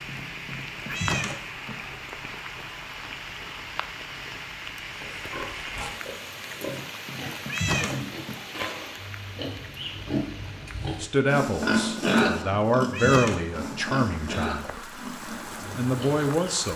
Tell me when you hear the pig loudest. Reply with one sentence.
The volume of the pig peaks at 12 seconds.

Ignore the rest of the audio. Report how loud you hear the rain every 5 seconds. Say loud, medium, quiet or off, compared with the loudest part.
loud, loud, medium, loud.